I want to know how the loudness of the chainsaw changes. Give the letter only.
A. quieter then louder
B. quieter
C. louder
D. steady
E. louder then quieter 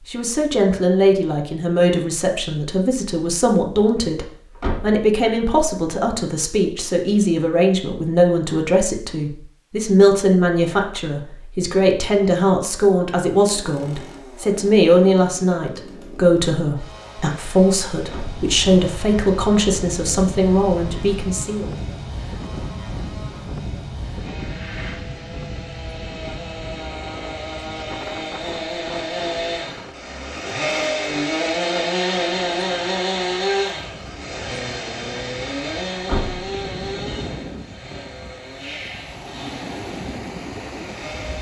E.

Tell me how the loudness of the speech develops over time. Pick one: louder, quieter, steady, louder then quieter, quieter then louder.
steady.